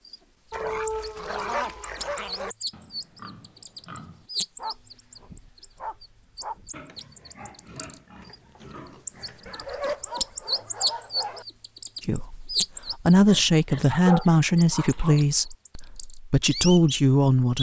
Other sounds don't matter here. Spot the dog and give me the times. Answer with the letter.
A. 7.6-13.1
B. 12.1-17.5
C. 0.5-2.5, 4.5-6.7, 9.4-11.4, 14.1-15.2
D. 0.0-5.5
C.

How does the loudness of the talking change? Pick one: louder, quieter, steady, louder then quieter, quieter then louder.
quieter then louder.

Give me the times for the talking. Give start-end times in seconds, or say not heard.
12.1-17.5.